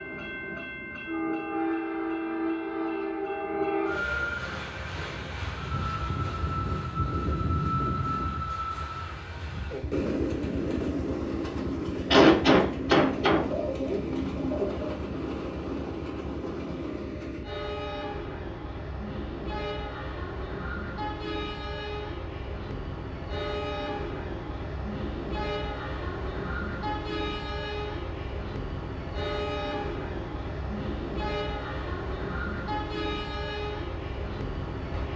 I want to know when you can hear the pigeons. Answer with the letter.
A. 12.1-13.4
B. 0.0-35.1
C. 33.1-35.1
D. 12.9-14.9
D.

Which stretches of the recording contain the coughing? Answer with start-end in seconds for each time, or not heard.
12.1-13.4.